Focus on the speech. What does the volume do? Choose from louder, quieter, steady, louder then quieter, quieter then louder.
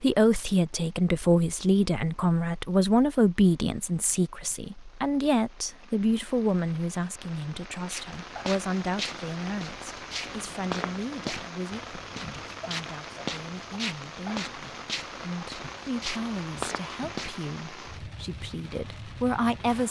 quieter then louder.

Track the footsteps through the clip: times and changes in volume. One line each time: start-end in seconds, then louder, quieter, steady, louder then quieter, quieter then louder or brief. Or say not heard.
7.8-17.4 steady.